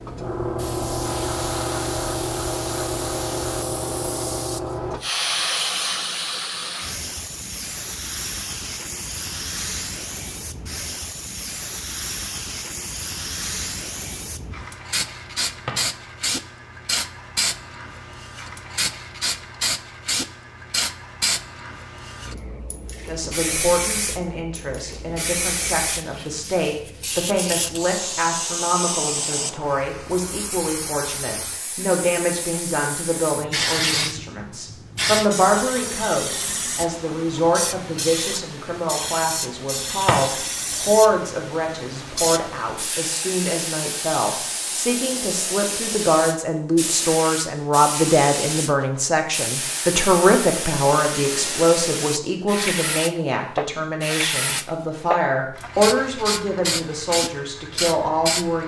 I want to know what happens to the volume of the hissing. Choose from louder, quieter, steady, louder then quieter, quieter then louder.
steady.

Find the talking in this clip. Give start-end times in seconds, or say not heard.
23.1-58.6.